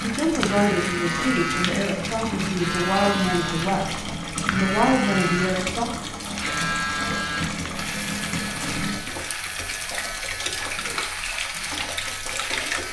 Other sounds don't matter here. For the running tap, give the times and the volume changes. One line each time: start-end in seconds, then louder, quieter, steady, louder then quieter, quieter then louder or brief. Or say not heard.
0.0-12.8 steady.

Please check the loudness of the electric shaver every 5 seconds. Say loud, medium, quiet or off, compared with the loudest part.
loud, loud, medium.